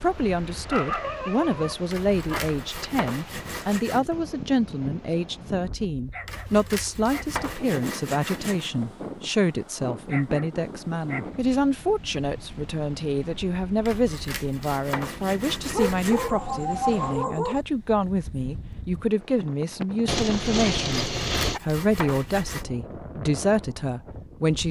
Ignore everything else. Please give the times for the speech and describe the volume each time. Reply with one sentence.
You can hear the speech from 0.0 to 24.6 s, at a steady volume.